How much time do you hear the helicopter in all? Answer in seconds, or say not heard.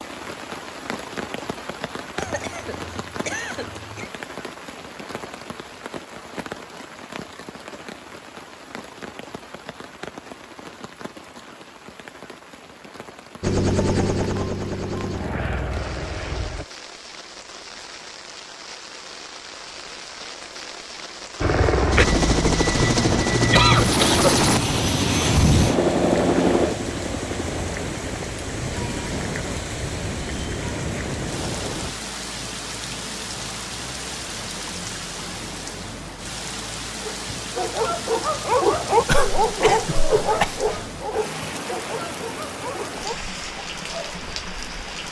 14 s.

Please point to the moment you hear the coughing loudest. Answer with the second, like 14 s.
24 s.